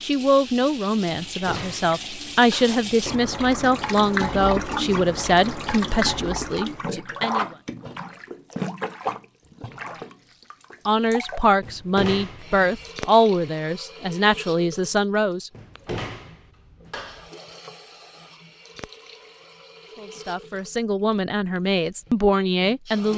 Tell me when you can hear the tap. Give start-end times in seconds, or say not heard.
0.0-23.1.